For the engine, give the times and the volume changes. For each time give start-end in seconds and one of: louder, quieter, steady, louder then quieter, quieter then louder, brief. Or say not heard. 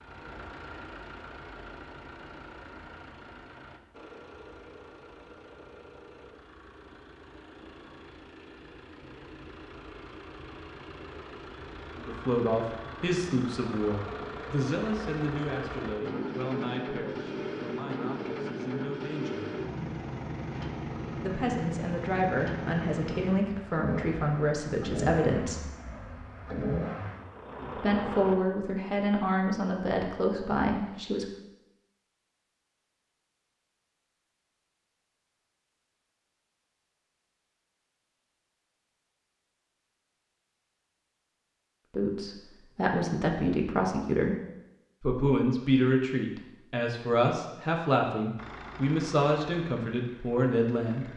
0.0-28.4 louder
48.4-51.1 brief.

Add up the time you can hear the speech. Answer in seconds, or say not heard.
24 s.